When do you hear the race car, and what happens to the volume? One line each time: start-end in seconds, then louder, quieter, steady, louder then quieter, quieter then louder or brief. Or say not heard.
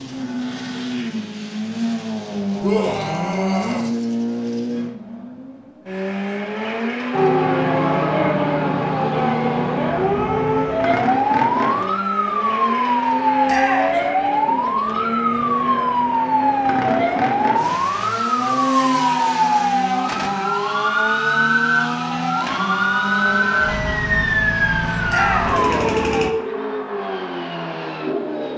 0.0-28.5 steady.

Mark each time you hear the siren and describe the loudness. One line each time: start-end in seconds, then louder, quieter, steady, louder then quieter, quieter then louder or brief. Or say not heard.
7.1-26.3 steady.